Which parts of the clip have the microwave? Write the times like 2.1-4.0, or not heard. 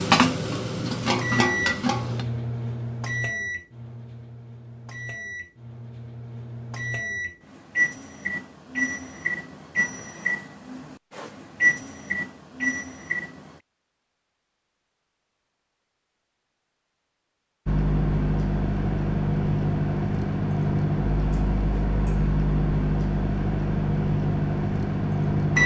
0.1-13.6, 17.6-25.6.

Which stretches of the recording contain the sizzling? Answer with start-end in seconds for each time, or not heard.
0.0-2.2.